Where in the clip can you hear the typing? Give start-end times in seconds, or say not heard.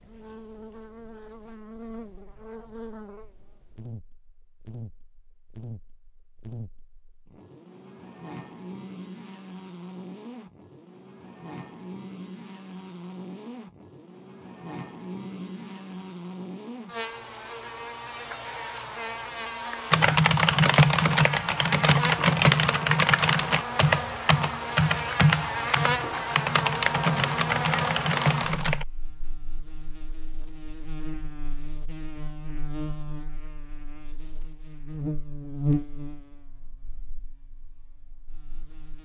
19.9-28.9.